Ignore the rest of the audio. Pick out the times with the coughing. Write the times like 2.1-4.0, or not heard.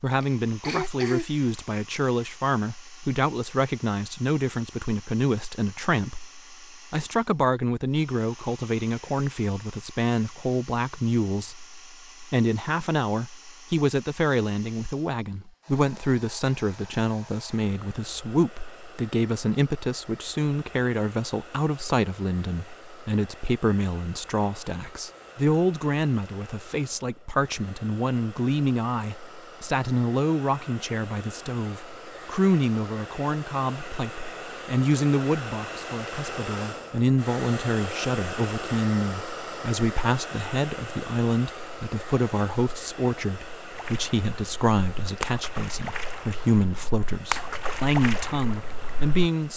0.2-1.6.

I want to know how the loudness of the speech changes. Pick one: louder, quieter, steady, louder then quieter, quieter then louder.
steady.